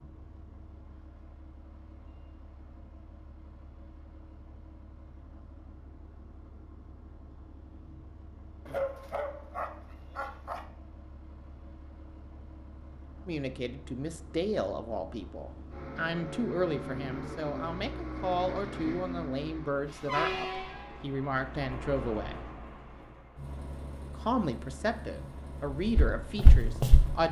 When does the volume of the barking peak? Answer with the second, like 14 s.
9 s.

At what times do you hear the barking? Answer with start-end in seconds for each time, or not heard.
8.7-10.7.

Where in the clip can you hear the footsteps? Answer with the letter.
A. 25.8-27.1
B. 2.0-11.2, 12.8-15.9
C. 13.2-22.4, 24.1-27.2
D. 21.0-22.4
A.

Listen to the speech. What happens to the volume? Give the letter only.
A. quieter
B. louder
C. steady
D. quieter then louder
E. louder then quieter
C.